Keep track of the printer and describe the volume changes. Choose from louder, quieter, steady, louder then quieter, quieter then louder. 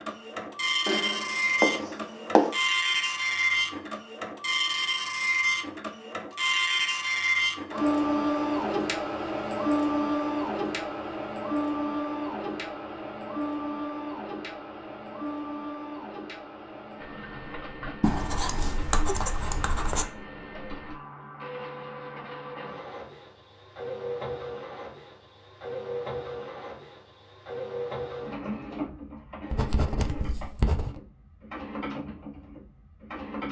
quieter.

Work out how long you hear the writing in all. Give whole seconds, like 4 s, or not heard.
5 s.